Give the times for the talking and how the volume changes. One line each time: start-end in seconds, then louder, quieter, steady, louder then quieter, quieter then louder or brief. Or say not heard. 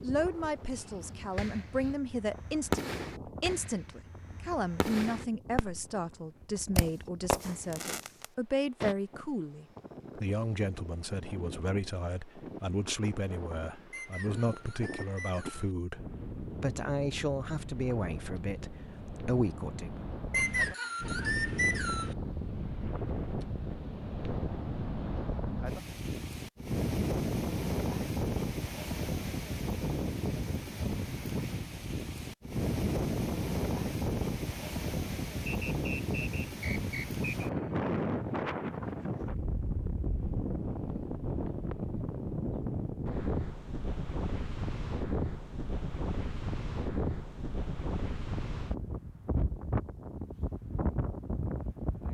0.0-19.9 steady.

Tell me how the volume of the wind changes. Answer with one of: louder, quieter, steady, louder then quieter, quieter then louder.
louder.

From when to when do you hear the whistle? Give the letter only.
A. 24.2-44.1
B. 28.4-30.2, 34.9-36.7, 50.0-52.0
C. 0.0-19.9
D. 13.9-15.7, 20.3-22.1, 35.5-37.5
D.